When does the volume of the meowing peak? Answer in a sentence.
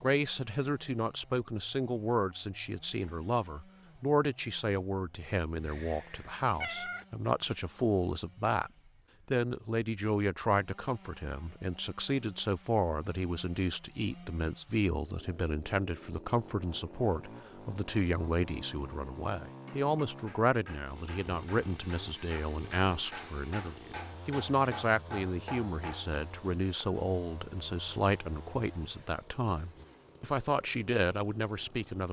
The loudest moment of the meowing is at 7 seconds.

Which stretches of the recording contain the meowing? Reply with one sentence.
The meowing can be heard from 5.5 to 7.0 s.